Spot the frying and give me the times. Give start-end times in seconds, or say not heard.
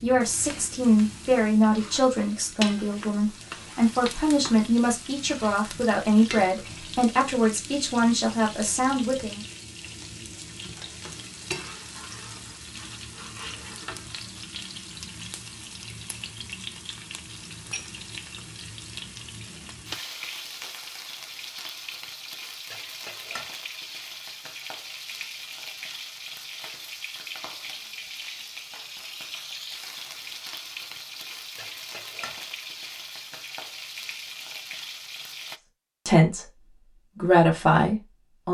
0.0-35.6.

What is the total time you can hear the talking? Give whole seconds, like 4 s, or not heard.
12 s.